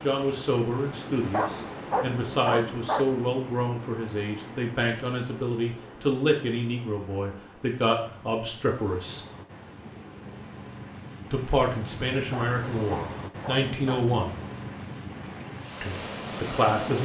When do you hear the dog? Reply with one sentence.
You can hear the dog from 1.3 to 3.1 s and from 12.3 to 14.1 s.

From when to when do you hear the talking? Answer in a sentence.
You can hear the talking from 0.0 to 9.2 s, from 11.3 to 14.3 s and from 15.8 to 17.0 s.